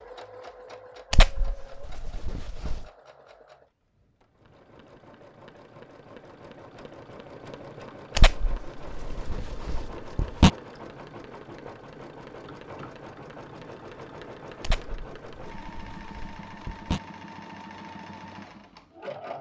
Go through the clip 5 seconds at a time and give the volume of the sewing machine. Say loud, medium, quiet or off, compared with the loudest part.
medium, loud, loud, loud.